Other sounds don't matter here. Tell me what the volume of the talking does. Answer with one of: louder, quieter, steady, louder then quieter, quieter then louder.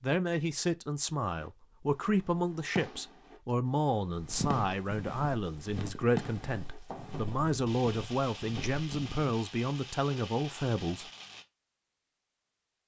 steady.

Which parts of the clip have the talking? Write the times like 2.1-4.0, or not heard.
0.0-11.1.